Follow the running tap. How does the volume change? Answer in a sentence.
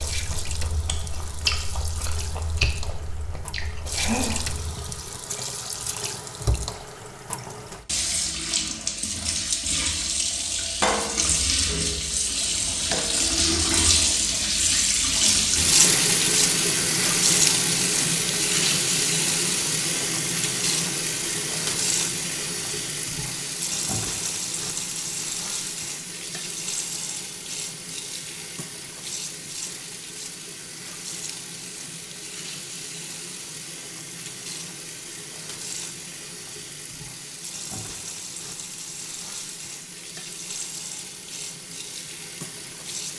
The volume of the running tap goes up, then down.